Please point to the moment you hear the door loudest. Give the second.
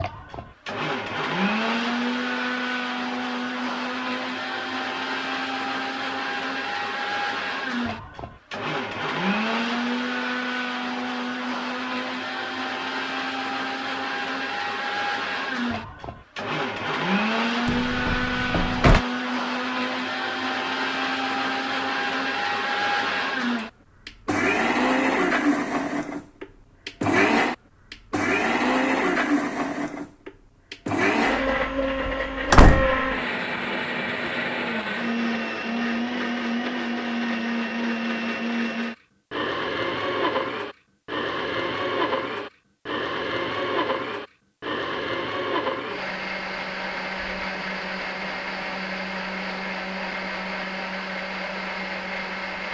33 s.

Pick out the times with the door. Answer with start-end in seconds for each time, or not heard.
17.6-19.0, 32.0-33.0.